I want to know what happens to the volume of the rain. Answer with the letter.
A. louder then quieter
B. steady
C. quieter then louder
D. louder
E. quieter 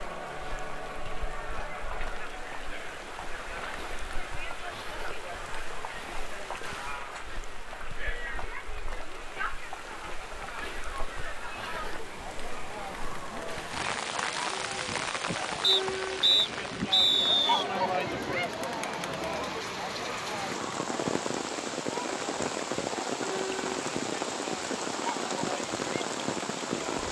D.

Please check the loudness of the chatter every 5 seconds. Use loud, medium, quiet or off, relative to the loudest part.
medium, medium, medium, loud, medium, medium.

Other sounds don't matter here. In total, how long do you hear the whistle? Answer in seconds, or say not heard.
2 s.